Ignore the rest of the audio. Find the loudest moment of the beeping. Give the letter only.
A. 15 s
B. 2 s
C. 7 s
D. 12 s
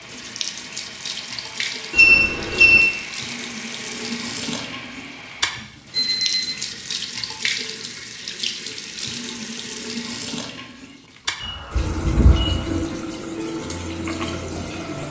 B.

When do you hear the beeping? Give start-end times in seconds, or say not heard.
1.9-2.8, 5.9-6.5, 11.4-12.8.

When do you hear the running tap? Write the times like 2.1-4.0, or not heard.
0.0-15.0.